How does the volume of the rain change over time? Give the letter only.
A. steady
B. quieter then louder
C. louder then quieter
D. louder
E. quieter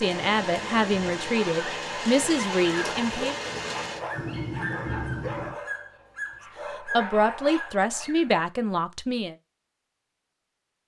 A.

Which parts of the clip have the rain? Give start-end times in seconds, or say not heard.
0.0-5.5.